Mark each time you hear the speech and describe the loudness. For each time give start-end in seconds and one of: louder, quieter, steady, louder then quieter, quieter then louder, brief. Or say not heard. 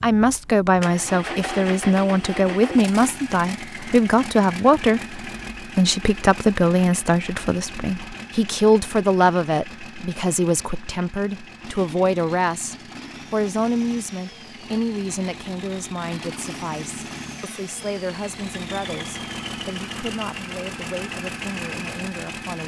0.0-22.6 quieter.